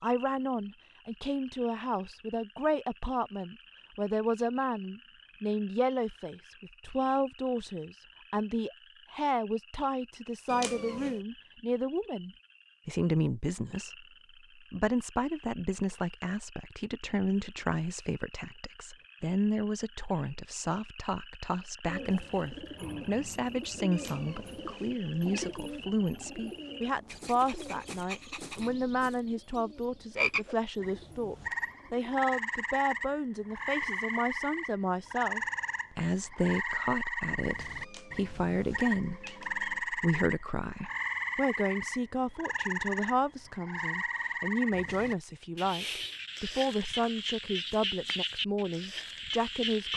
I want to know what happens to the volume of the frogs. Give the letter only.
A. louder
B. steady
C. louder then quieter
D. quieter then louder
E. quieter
A.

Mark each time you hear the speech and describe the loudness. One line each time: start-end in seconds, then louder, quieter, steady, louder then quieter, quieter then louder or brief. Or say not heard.
0.0-14.1 steady
14.7-49.9 steady.